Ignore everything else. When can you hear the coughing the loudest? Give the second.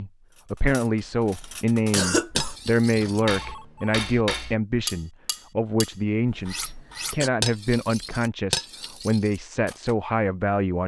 2 s.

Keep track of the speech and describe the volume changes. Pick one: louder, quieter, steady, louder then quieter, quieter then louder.
steady.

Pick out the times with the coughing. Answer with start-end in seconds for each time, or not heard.
1.2-2.5, 6.2-7.3.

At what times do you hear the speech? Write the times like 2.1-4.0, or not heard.
0.0-10.8.